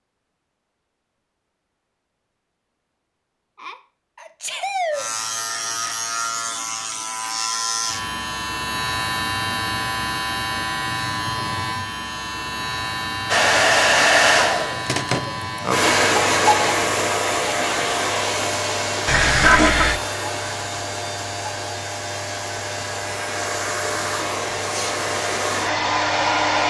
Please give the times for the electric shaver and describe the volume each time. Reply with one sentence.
The electric shaver can be heard from 4.9 to 26.6 s, getting quieter.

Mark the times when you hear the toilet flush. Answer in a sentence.
The toilet flush can be heard from 19.1 to 20.0 s.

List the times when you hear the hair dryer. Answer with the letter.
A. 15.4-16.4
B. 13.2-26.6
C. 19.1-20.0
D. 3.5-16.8
B.